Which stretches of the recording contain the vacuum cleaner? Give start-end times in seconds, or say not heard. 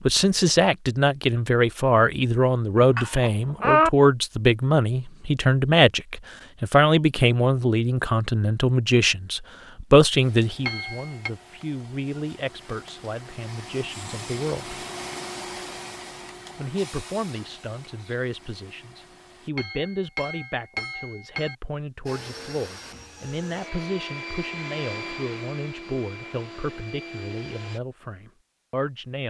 10.2-19.5, 22.1-27.8.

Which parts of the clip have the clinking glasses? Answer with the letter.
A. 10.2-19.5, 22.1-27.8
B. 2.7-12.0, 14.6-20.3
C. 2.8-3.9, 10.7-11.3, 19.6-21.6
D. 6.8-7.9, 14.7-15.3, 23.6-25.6
C.